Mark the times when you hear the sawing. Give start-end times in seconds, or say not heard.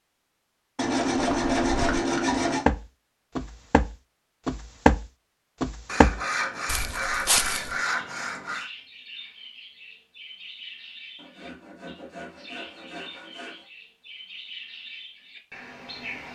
0.8-2.6, 5.8-8.7, 11.2-13.7.